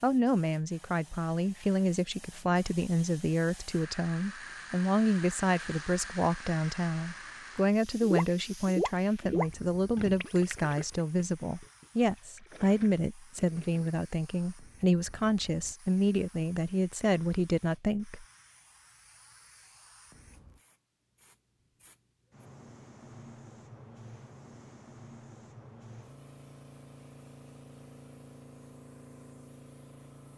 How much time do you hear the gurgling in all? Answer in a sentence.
You can hear the gurgling for 6 seconds altogether.